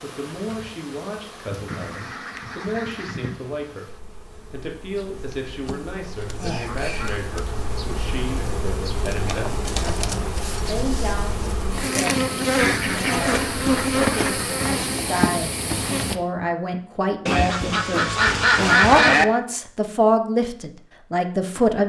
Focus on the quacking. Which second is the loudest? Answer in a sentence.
The loudest moment of the quacking is at 19 seconds.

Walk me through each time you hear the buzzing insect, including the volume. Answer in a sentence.
The buzzing insect can be heard from 0.0 to 16.1 s, getting louder.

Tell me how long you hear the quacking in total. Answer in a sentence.
You can hear the quacking for 7 seconds altogether.